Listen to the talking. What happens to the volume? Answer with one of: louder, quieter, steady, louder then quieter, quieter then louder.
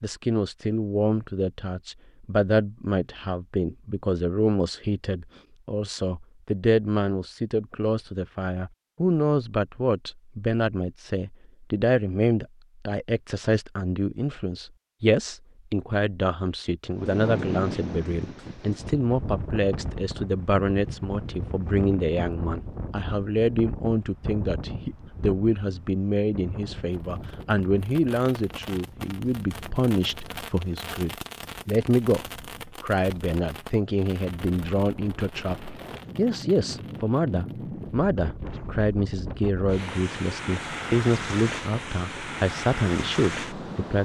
steady.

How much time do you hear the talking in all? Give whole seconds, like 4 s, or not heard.
44 s.